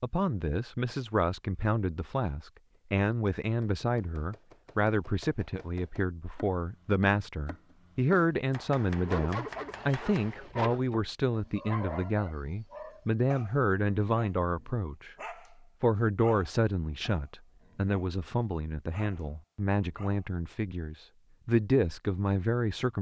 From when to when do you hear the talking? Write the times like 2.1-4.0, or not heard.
0.0-15.2, 15.8-22.9.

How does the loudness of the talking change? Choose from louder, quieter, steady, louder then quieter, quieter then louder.
steady.